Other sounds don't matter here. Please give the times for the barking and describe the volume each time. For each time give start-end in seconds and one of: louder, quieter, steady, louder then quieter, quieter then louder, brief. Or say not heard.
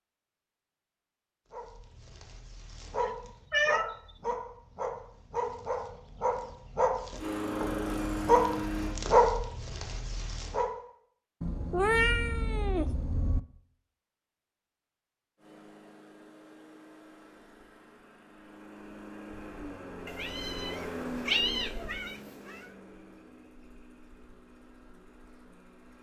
1.5-10.7 louder.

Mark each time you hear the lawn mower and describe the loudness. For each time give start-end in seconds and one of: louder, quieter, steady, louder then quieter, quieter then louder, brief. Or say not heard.
7.2-8.9 brief
15.3-25.9 louder then quieter.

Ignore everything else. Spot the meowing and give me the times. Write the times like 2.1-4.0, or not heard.
3.0-4.0, 11.4-13.4, 20.1-22.6.